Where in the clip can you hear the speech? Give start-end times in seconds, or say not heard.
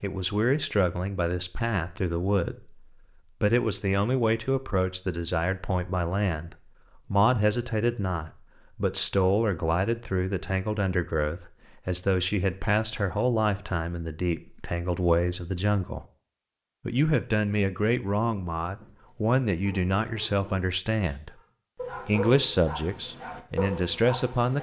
0.0-16.1, 16.9-21.3, 22.1-24.5.